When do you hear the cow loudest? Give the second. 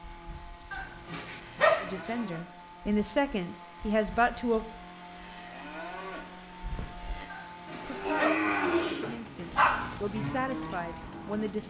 9 s.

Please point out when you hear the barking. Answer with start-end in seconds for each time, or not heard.
0.7-2.2, 7.3-10.0.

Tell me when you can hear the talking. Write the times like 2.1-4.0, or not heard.
1.8-4.7, 8.0-11.6.